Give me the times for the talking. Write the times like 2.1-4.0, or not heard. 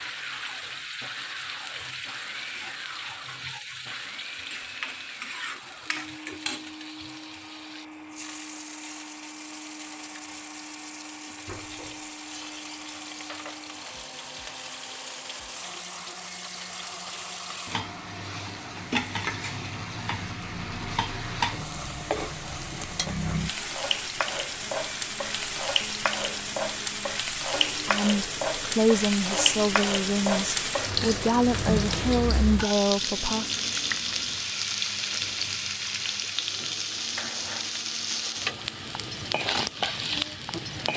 27.9-33.5.